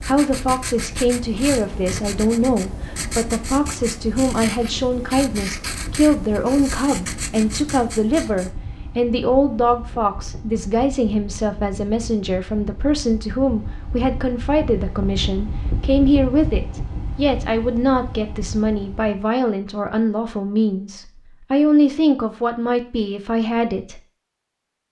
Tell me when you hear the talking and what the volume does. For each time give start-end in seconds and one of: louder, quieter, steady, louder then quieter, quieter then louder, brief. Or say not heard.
0.1-24.0 steady.